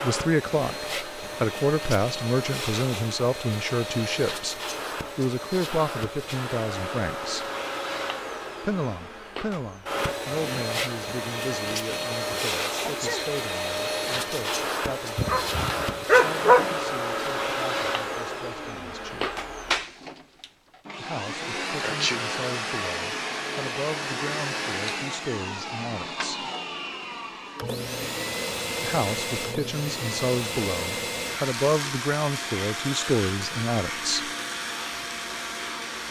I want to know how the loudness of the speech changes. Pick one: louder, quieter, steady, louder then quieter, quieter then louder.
quieter then louder.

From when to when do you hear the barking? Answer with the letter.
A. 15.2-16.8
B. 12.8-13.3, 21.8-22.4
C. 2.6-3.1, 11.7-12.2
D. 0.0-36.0
A.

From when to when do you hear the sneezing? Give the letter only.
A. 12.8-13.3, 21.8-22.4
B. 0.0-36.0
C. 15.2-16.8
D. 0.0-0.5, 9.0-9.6
A.